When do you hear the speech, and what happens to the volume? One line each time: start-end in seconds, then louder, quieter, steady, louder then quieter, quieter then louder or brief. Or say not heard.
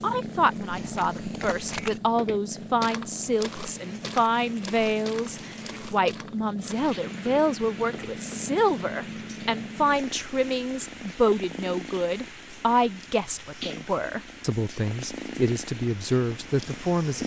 0.0-17.2 steady.